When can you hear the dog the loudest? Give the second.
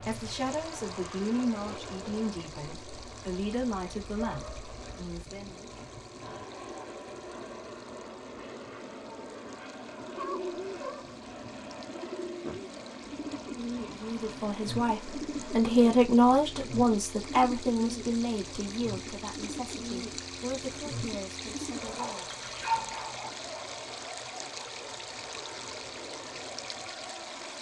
23 s.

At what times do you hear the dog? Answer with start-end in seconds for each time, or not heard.
4.2-4.7, 10.2-11.2, 21.8-23.3.